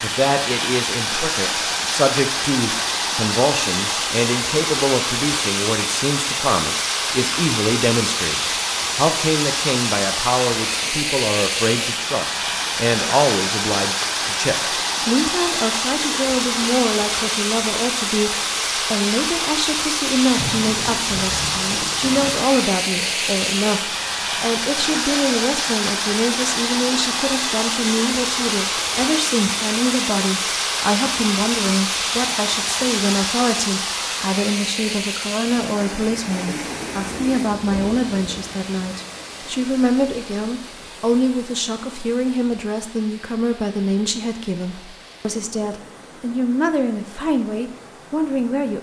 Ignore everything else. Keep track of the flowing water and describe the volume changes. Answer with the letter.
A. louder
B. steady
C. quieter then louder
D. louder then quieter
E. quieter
E.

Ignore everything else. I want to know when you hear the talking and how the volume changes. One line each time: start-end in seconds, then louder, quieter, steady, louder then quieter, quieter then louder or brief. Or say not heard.
0.0-48.7 steady.